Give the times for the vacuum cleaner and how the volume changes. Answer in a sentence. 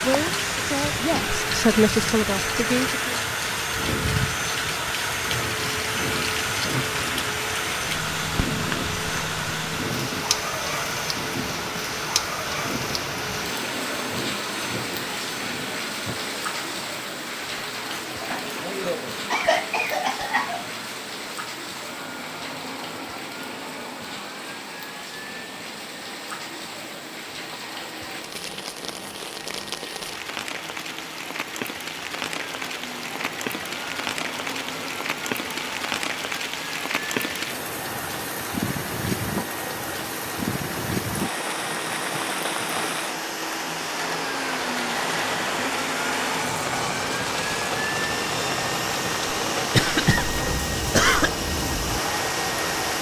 The vacuum cleaner can be heard from 0.0 to 52.9 s, getting quieter then louder.